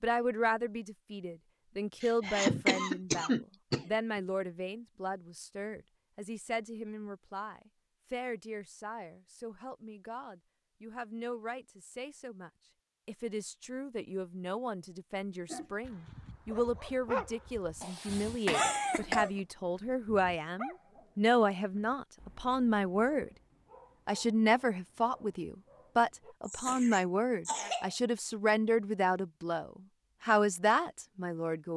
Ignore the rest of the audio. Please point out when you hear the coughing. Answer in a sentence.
You can hear the coughing from 2.0 to 3.9 s, from 17.8 to 19.3 s and from 26.4 to 27.9 s.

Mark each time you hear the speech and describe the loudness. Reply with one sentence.
You can hear the speech from 0.0 to 23.3 s, getting quieter then louder; and from 24.1 to 31.7 s, at a steady volume.